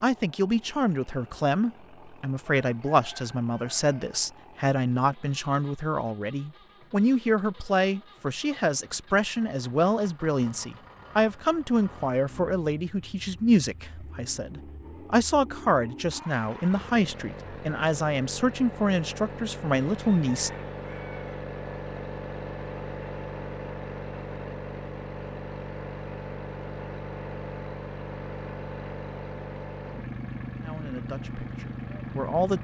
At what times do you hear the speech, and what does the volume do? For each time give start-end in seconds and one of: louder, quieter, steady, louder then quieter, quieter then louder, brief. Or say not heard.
0.0-20.5 steady
30.6-32.5 brief.